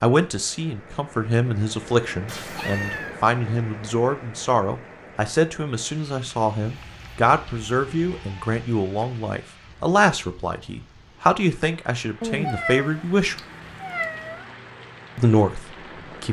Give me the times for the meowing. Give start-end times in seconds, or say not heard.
2.2-3.2, 6.7-8.4, 12.2-14.4.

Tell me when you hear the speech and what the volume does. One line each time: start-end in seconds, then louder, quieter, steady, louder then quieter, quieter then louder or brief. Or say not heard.
0.0-13.3 steady
15.2-16.2 brief.